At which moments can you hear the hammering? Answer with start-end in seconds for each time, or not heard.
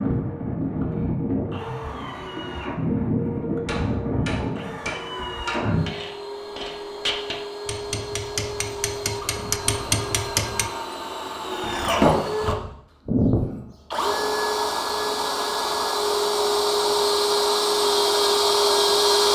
3.6-10.7.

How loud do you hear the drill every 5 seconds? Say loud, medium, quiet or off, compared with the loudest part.
medium, medium, loud, loud.